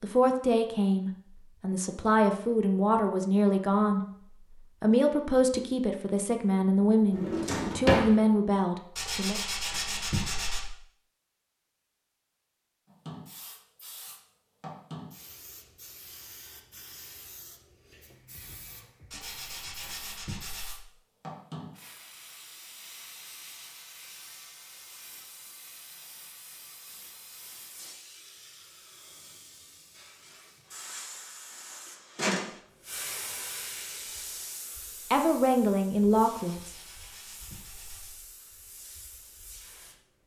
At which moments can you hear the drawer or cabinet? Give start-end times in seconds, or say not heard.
7.1-8.1.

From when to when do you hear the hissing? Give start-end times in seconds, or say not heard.
12.8-40.2.